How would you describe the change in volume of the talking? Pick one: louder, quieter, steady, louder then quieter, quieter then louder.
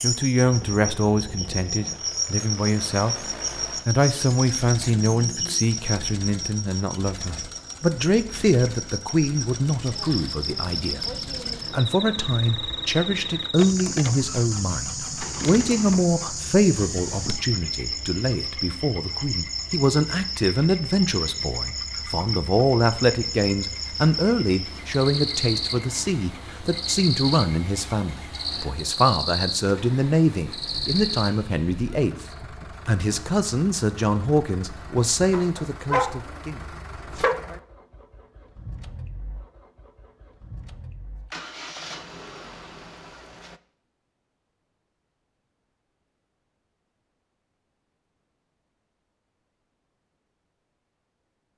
steady.